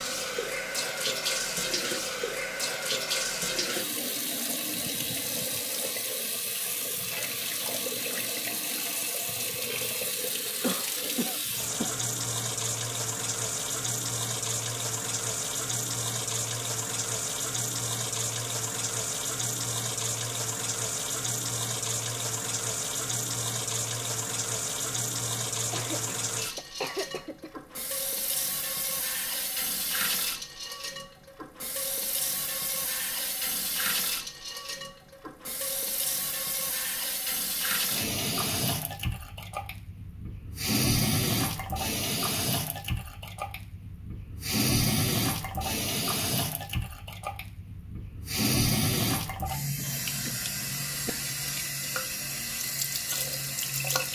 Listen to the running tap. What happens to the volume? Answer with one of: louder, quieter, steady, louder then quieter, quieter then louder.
steady.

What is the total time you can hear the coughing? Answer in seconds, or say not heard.
5 s.